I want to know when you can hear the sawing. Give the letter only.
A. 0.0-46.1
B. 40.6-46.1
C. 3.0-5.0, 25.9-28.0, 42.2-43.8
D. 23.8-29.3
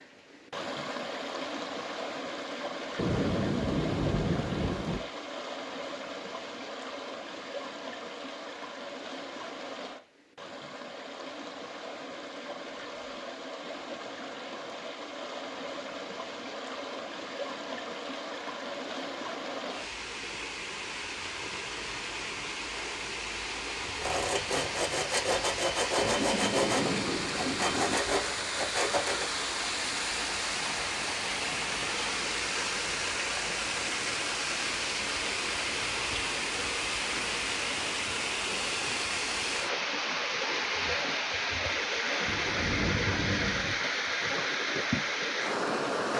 D.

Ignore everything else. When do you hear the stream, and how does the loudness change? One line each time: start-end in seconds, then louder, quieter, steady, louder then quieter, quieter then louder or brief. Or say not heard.
0.0-46.1 louder.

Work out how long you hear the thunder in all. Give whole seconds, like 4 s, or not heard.
6 s.